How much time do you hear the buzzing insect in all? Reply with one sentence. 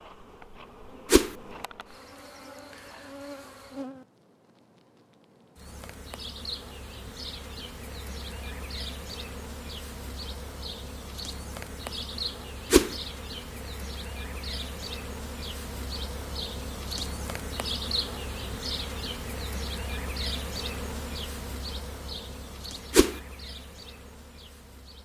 You can hear the buzzing insect for 25 seconds altogether.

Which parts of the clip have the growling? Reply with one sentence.
You can't hear the growling here.